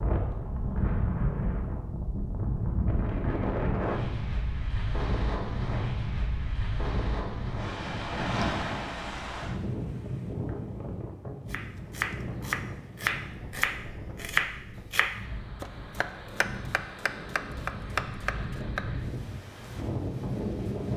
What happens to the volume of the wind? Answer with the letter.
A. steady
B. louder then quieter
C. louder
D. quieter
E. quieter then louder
E.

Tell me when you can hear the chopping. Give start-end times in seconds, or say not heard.
11.5-18.9.